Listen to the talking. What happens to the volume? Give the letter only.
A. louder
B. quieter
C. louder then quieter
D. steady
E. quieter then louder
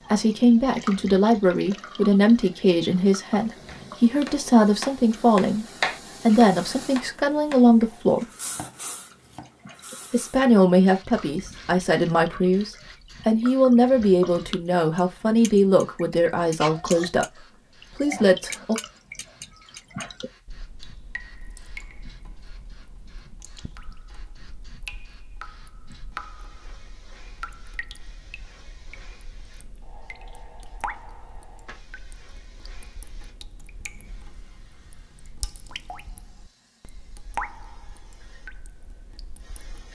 D.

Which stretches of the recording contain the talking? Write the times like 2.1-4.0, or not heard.
0.1-8.2, 10.1-18.8.